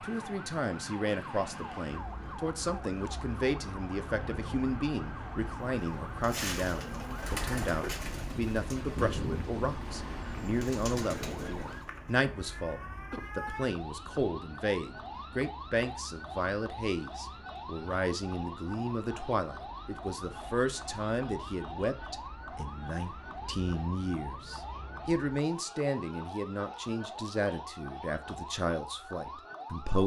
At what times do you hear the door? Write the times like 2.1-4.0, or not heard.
not heard.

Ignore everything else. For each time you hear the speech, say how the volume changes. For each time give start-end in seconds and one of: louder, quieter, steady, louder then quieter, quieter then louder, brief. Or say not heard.
0.0-30.0 steady.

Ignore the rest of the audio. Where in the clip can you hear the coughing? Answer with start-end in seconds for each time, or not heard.
13.1-13.5.